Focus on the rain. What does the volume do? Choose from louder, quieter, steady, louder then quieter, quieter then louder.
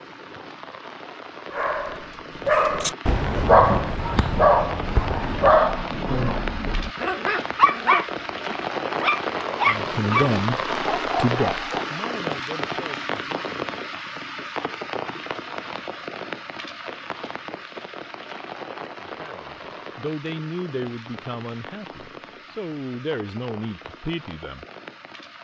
louder then quieter.